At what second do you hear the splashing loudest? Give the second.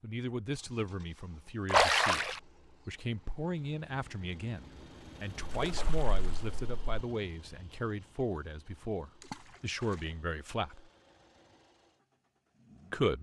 2 s.